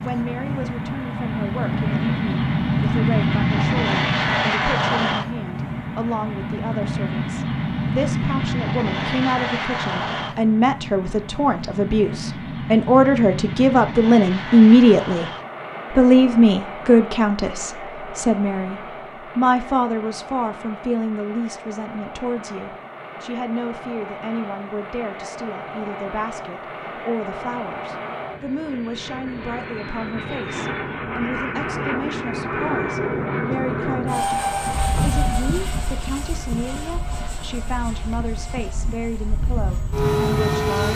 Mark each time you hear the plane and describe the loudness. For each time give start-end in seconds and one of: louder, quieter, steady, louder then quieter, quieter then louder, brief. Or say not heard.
0.0-40.8 quieter then louder.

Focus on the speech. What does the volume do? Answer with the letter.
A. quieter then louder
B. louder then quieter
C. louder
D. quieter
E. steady
B.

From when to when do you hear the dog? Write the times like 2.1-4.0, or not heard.
not heard.